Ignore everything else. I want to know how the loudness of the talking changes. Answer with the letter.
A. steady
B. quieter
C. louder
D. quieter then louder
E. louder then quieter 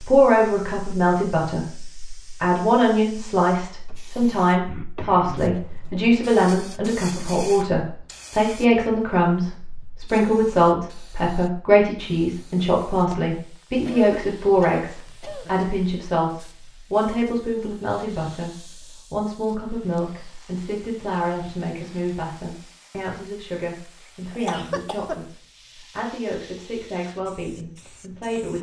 B.